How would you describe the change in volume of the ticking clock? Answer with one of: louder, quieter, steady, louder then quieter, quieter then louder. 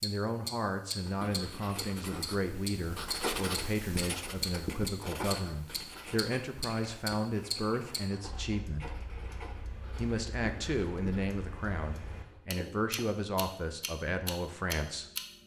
quieter then louder.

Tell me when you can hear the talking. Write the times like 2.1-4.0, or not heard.
0.0-8.9, 9.9-15.1.